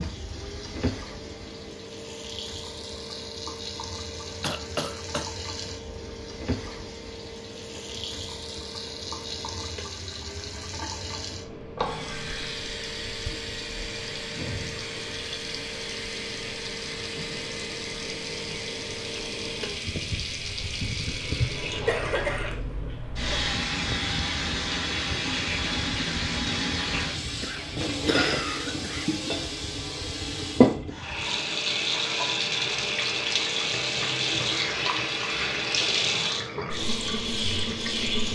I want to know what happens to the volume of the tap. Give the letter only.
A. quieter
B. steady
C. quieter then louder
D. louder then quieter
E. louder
E.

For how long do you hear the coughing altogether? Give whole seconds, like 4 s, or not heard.
4 s.